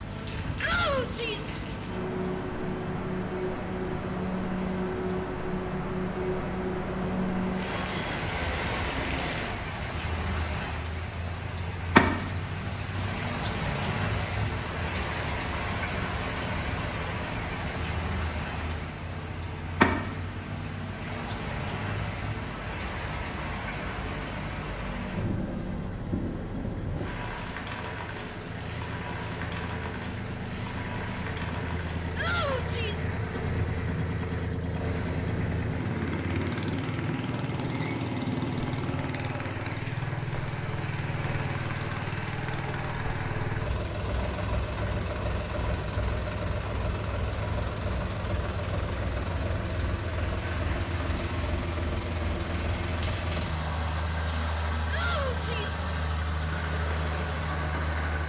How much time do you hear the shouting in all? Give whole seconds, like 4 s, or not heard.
3 s.